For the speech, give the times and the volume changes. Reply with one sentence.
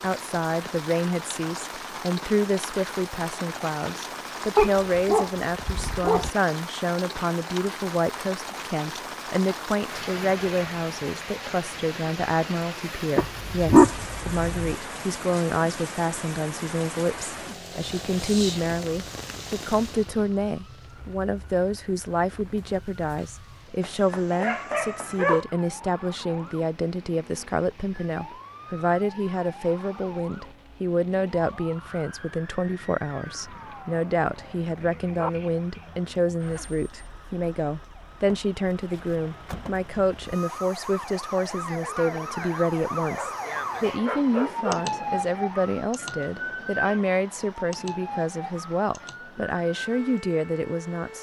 The speech can be heard from 0.0 to 51.1 s, at a steady volume.